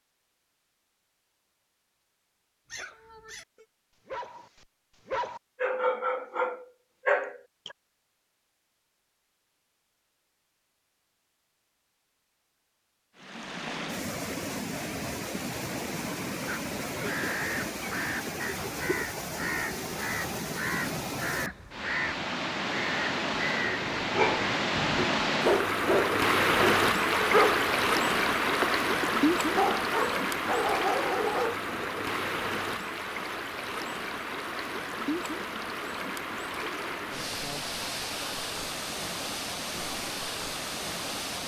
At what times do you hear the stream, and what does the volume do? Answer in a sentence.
The stream can be heard from 13.2 to 41.4 s, getting louder then quieter.